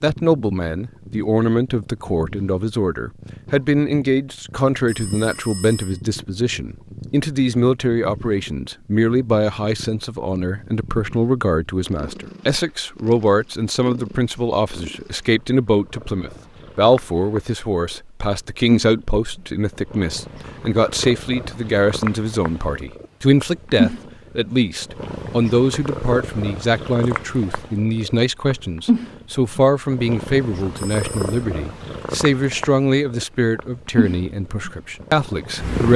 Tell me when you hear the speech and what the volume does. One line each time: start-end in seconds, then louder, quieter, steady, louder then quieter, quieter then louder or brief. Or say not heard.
0.0-35.9 steady.